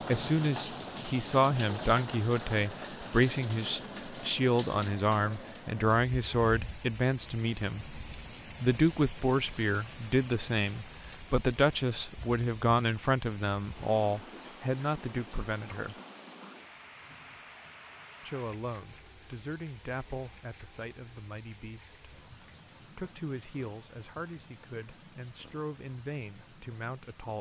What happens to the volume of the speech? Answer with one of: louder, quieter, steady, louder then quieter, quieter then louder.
quieter.